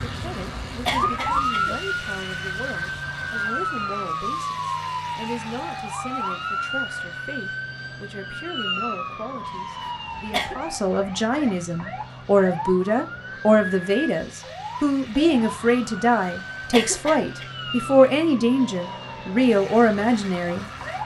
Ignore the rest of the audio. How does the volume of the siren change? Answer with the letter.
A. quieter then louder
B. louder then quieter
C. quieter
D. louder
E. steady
C.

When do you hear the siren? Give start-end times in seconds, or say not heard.
0.0-21.0.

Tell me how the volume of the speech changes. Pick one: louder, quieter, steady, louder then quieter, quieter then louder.
louder.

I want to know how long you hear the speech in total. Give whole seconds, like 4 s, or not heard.
21 s.